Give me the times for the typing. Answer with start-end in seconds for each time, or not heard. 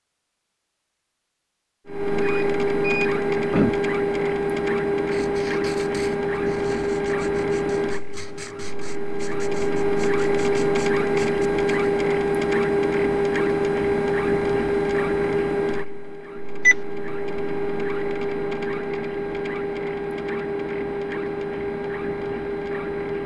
not heard.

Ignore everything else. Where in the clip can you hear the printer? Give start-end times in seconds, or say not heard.
1.9-23.2.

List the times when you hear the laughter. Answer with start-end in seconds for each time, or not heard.
not heard.